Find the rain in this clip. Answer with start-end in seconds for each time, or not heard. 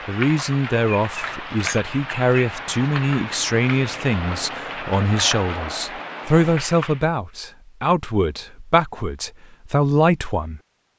0.0-7.0.